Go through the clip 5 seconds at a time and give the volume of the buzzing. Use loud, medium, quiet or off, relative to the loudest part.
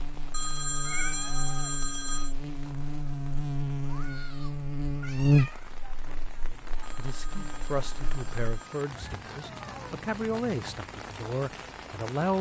medium, loud, off.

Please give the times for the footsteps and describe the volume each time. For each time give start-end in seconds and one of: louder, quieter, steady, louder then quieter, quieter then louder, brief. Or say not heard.
not heard.